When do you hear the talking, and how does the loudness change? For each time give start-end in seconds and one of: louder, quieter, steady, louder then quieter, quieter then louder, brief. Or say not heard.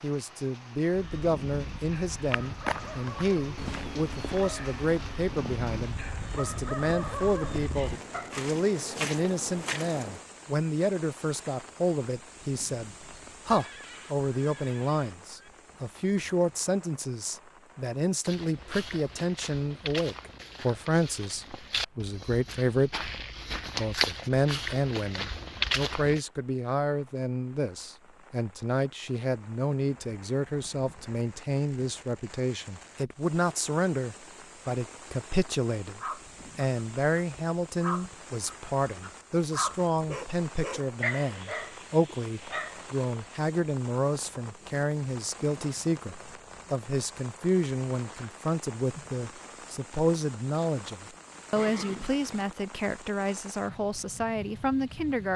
0.0-23.1 steady
23.8-55.3 steady.